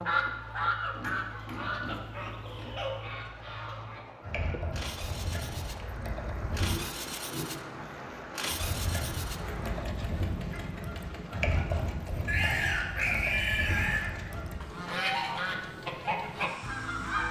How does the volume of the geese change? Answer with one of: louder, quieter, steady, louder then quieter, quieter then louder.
quieter then louder.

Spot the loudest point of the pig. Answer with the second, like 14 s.
13 s.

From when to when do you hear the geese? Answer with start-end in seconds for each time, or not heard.
0.0-6.8, 8.5-17.2.